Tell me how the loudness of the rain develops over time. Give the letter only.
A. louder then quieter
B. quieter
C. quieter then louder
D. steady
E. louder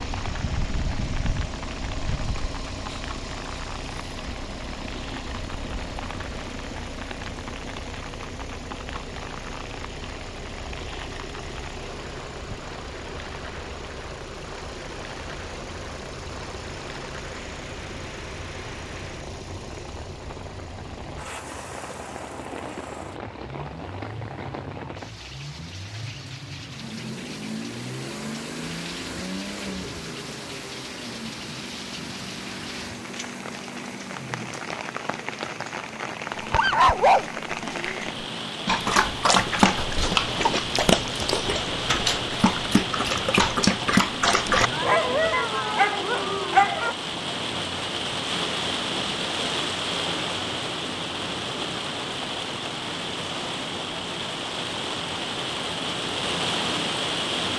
E.